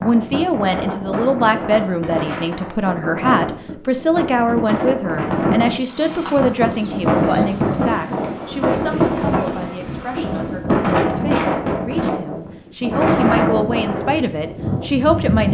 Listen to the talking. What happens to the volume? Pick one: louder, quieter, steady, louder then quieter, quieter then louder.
quieter then louder.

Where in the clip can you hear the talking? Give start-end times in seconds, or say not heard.
0.0-15.5.